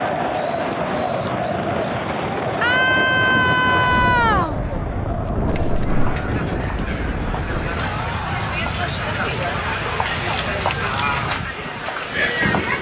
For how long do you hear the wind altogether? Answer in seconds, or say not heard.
13 s.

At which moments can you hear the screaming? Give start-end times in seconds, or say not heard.
2.6-4.6, 8.0-8.7.